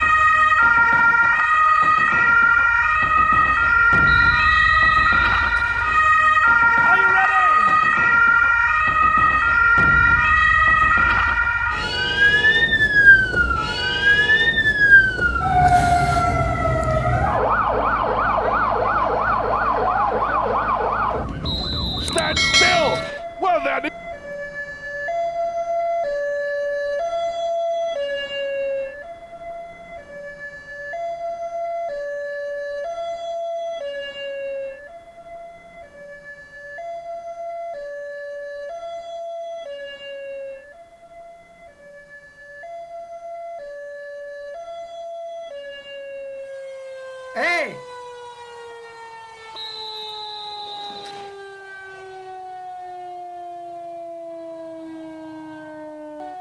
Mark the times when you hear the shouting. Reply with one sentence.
You can hear the shouting from 6.8 to 7.8 s, from 22.0 to 23.9 s and from 47.4 to 47.8 s.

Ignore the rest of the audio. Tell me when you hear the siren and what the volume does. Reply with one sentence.
You can hear the siren from 0.0 to 56.3 s, getting quieter.